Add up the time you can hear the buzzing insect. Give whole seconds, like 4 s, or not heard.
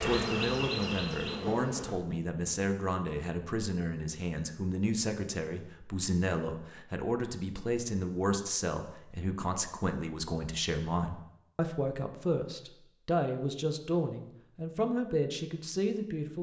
2 s.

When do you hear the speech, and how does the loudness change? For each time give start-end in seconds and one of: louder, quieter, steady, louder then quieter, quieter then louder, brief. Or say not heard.
0.0-16.3 steady.